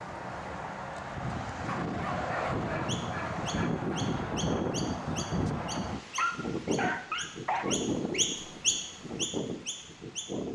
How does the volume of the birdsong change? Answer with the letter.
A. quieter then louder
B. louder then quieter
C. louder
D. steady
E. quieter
C.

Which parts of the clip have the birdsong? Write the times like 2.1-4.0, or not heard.
2.9-10.4.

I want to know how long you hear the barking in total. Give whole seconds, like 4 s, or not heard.
4 s.